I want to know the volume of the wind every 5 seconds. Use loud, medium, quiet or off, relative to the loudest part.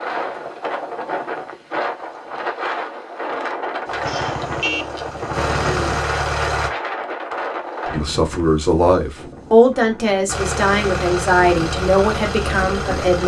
loud, loud, medium.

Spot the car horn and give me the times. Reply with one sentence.
The car horn can be heard from 4.0 to 6.0 s.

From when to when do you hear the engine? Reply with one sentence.
The engine can be heard from 3.9 to 6.7 s and from 10.2 to 13.2 s.